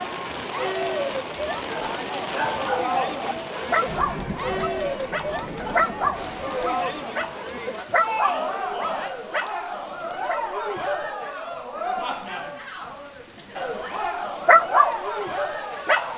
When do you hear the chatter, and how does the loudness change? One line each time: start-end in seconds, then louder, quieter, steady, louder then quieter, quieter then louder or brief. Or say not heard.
0.0-16.1 steady.